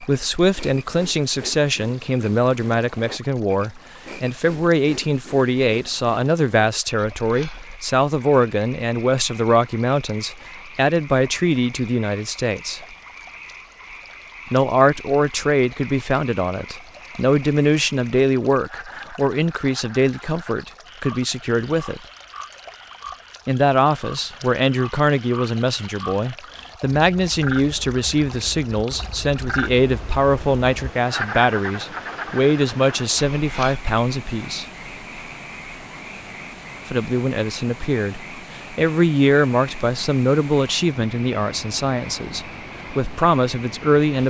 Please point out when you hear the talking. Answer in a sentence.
You can hear the talking from 0.0 to 12.8 s, from 14.5 to 22.0 s, from 23.4 to 34.6 s and from 36.9 to 44.2 s.